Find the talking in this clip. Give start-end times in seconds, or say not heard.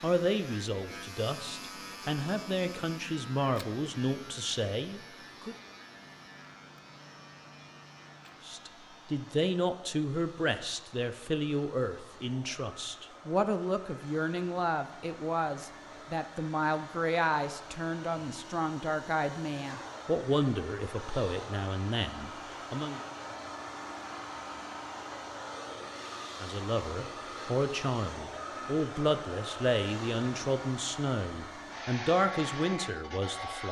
0.0-5.5, 8.4-23.0, 26.4-33.6.